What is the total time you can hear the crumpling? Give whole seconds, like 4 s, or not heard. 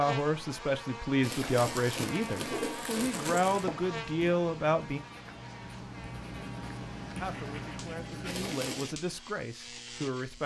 3 s.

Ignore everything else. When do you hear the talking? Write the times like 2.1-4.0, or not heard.
0.0-5.0, 7.2-10.4.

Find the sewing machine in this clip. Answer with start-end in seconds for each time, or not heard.
not heard.